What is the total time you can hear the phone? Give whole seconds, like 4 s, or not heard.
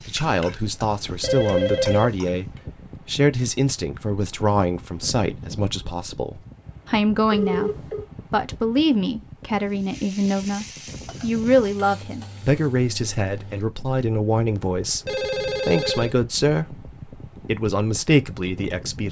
3 s.